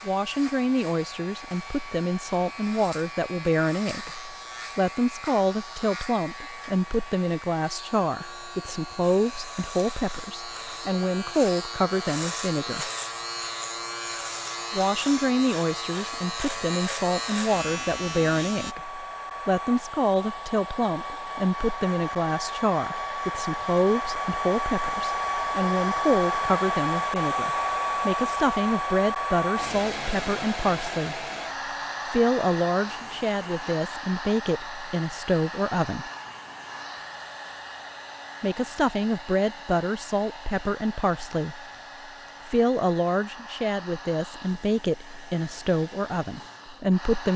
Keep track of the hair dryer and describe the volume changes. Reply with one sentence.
The loudness of the hair dryer goes up, then down.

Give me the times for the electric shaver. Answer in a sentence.
The electric shaver can be heard from 0.0 to 18.8 s.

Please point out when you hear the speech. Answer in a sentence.
You can hear the speech from 0.1 to 12.9 s, from 14.7 to 31.2 s, from 32.0 to 36.1 s, from 38.4 to 41.6 s and from 42.5 to 47.3 s.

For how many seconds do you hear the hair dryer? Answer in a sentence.
The hair dryer can be heard for 47 seconds in total.